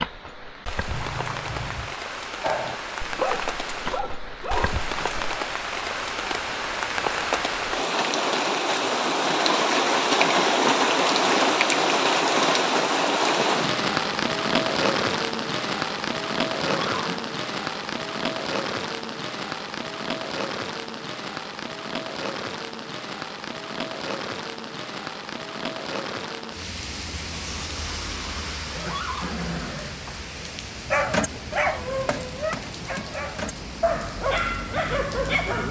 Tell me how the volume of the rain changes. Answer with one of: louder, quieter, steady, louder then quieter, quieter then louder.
louder then quieter.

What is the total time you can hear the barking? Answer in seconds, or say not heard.
8 s.